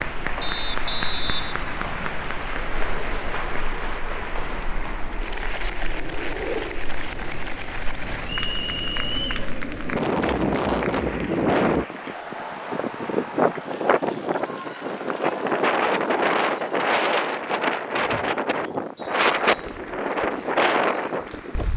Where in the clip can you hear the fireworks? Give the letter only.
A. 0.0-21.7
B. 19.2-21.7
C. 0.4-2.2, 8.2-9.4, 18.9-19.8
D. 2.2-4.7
D.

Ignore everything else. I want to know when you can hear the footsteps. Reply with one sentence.
The footsteps can't be heard in this clip.